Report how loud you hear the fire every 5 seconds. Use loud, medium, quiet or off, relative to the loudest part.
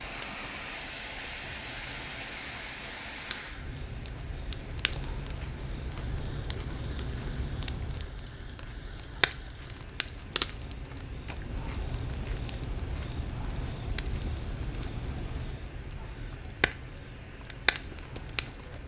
medium, loud, loud, loud.